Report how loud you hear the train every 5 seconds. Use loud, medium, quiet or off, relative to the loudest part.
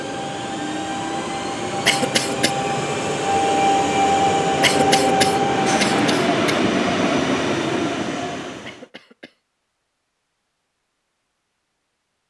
loud, loud, off.